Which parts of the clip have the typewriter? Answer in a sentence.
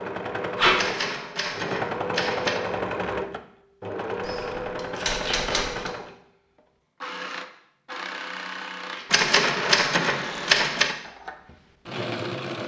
The typewriter can be heard from 0.8 to 2.6 s, from 4.2 to 5.9 s and from 9.1 to 10.9 s.